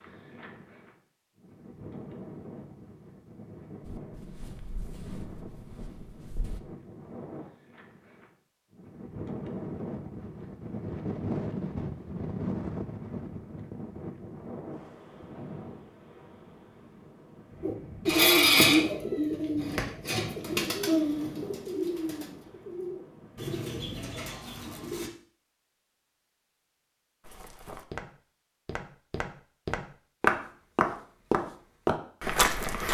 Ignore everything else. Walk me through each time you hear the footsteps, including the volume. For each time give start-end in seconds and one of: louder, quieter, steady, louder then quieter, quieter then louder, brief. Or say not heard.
3.9-6.6 brief
27.2-32.8 louder.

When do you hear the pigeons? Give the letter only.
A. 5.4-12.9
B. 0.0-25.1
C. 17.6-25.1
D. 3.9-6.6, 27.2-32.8
C.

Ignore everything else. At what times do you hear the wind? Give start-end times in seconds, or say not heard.
0.0-25.1.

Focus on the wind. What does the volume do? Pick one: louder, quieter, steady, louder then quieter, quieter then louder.
louder then quieter.